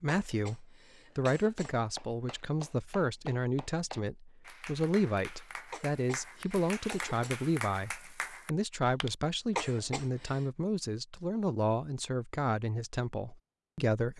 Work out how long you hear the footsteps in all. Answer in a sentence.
You can't hear the footsteps here.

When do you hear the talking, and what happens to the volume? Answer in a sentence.
The talking can be heard from 0.0 to 14.1 s, at a steady volume.